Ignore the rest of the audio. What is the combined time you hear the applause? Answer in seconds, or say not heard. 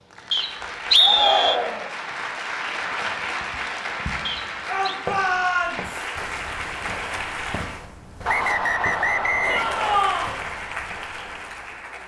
10 s.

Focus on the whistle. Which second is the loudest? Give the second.
1 s.